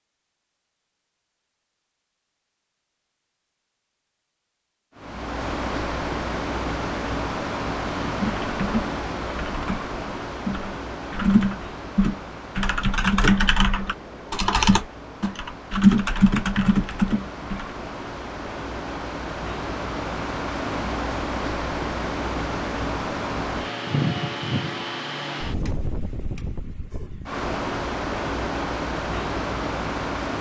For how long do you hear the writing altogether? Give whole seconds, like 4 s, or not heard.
not heard.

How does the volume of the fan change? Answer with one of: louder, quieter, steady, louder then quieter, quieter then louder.
quieter then louder.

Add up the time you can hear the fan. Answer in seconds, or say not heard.
25 s.